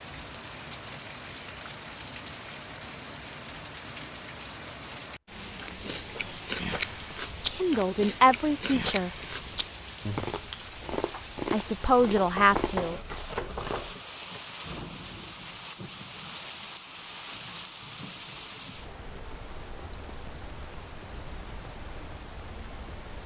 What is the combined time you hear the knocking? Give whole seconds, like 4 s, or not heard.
2 s.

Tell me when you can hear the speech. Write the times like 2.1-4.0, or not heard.
7.5-9.1, 11.5-13.0.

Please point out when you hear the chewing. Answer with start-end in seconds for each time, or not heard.
5.5-13.9.